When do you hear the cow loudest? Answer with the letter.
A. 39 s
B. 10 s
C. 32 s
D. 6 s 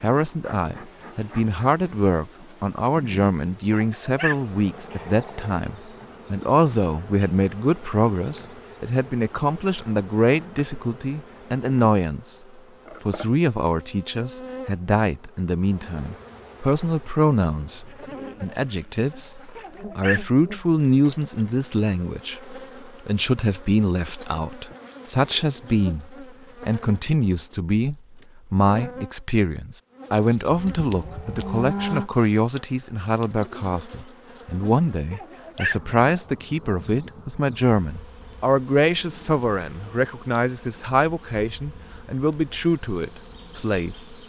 C.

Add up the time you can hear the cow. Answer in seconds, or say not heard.
2 s.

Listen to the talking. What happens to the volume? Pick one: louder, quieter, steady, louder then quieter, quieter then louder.
steady.